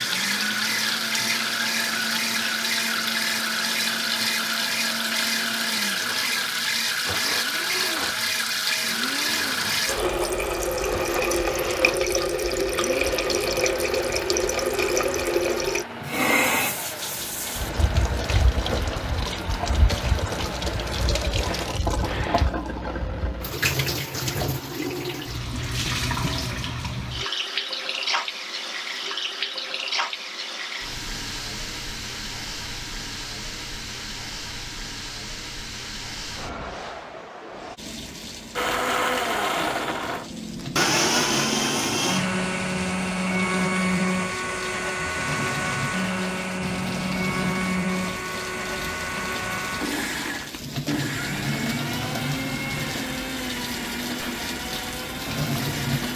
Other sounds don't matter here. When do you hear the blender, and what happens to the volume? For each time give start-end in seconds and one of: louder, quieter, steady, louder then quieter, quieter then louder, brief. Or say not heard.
0.0-22.4 steady
38.5-56.1 quieter.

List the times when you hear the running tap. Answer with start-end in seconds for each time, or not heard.
0.0-56.1.